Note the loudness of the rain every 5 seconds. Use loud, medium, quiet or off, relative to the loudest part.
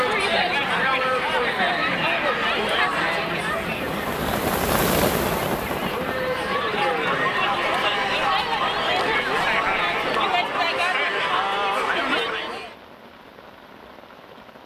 loud, loud, quiet.